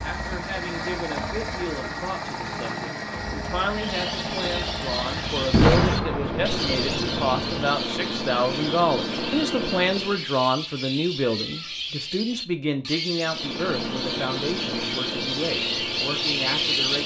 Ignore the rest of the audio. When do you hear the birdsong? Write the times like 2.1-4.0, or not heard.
3.7-17.0.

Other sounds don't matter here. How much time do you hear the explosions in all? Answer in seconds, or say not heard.
2 s.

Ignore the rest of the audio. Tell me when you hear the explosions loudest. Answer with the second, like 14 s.
6 s.